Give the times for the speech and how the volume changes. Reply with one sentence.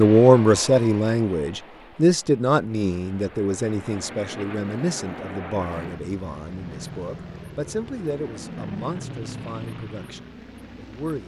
You can hear the speech from 0.0 to 11.2 s, getting quieter.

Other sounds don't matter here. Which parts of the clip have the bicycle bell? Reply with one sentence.
You can't hear the bicycle bell here.